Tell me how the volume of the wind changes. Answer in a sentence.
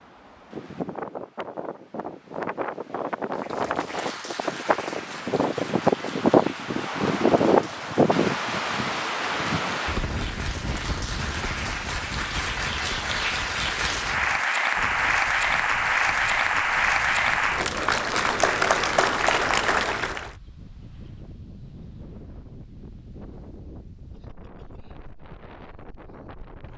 The volume of the wind goes up, then down.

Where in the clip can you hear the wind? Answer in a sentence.
The wind can be heard from 0.0 to 26.7 s.